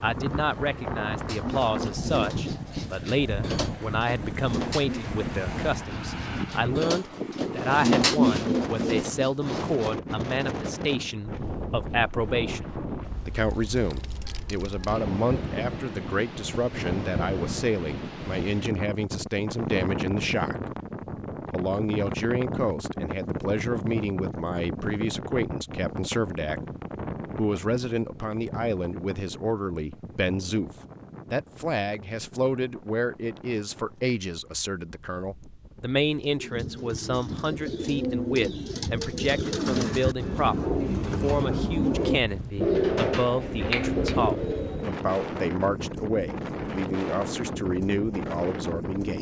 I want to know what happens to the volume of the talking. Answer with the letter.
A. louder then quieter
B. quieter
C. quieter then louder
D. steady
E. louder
D.